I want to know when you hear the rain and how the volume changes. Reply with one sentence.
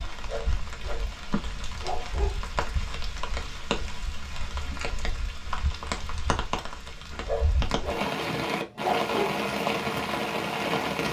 The rain can be heard from 0.0 to 11.0 s, getting louder.